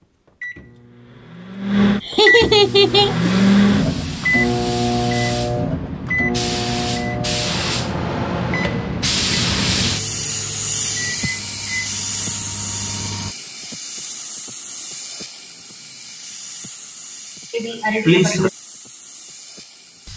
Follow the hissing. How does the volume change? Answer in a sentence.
The loudness of the hissing goes up, then down.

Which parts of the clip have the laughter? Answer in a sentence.
You can hear the laughter from 2.0 to 3.3 s and from 17.5 to 18.5 s.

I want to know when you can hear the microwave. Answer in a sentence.
The microwave can be heard from 0.0 to 13.3 s.